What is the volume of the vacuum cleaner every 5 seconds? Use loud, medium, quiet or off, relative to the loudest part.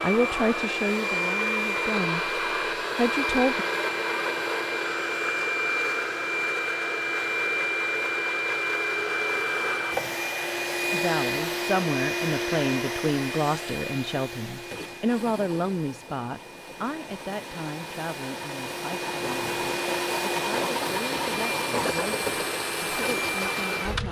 loud, loud, loud, medium, loud.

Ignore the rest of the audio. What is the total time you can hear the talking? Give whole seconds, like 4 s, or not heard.
17 s.